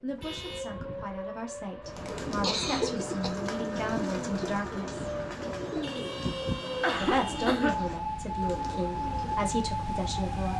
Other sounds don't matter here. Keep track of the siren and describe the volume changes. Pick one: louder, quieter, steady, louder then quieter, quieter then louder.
louder.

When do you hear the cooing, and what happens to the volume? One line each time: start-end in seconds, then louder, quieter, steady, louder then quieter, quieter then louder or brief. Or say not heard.
1.9-9.6 quieter.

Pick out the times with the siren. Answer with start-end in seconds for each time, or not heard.
0.0-10.5.